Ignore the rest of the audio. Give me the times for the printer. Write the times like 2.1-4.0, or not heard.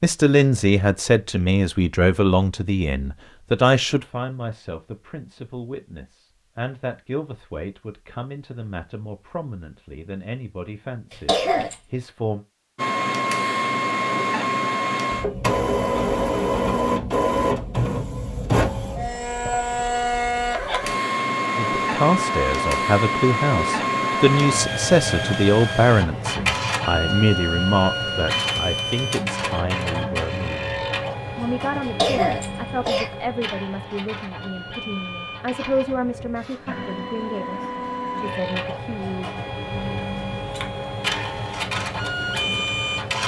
12.8-43.2.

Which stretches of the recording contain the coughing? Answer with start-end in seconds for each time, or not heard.
11.1-11.8, 31.8-33.3.